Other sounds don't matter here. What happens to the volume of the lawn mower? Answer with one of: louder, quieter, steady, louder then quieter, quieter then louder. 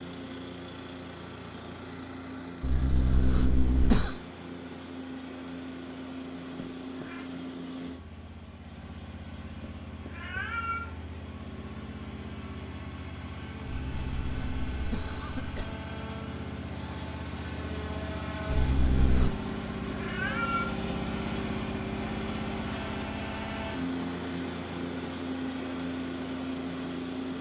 louder.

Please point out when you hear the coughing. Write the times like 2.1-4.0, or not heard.
2.6-4.2, 13.7-15.7, 18.4-19.3.